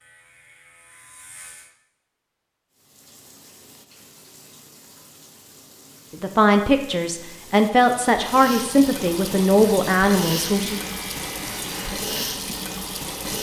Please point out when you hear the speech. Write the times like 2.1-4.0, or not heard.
6.1-10.8.